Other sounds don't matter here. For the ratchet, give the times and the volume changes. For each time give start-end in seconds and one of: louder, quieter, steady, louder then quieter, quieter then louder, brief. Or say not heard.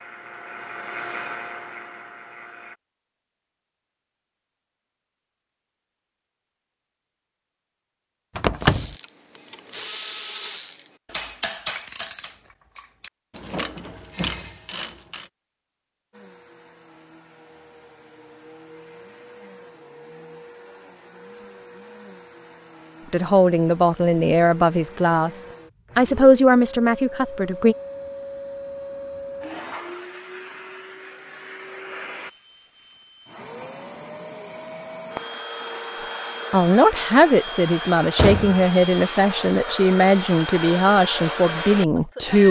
8.6-15.3 steady.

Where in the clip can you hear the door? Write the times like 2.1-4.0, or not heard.
8.3-8.9, 38.1-39.2.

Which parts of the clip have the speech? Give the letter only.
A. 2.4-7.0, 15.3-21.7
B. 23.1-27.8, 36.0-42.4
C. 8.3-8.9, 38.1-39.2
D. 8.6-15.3
B.